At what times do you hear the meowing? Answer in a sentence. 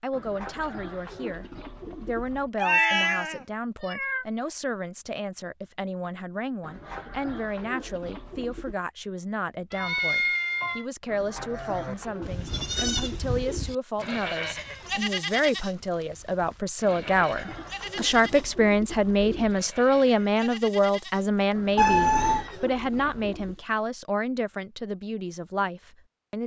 The meowing can be heard from 2.5 to 4.2 s, from 9.7 to 10.8 s and from 21.8 to 22.4 s.